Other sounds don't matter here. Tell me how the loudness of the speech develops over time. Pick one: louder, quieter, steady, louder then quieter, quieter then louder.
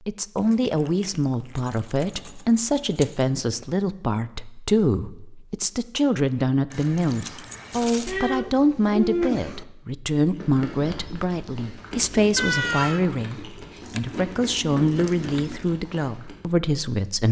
steady.